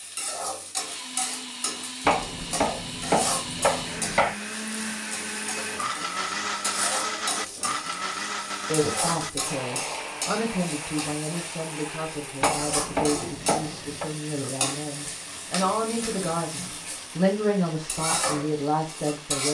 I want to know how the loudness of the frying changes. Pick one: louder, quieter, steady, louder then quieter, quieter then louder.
steady.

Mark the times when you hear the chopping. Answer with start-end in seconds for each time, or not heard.
2.0-4.3, 12.4-14.1.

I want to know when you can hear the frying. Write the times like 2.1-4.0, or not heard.
0.0-19.5.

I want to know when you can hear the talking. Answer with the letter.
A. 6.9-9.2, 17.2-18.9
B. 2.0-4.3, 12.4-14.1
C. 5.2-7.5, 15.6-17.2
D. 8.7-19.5
D.